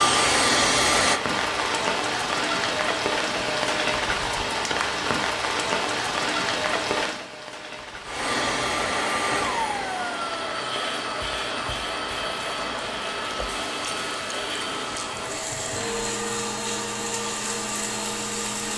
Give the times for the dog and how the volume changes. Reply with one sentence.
You can't hear the dog here.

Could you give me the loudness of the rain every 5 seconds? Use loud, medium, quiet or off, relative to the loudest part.
loud, loud, medium, medium.